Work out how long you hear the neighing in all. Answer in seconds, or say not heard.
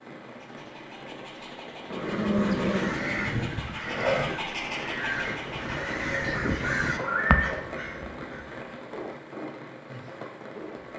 3 s.